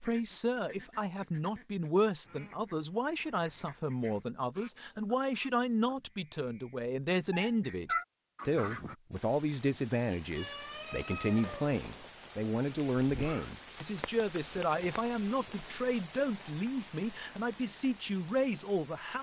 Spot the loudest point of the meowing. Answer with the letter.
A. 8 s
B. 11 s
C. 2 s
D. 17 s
A.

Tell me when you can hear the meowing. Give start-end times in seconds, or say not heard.
7.3-8.1, 10.3-12.1.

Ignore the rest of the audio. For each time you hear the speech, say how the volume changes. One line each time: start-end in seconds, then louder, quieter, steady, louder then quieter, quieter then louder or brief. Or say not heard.
0.0-19.1 steady.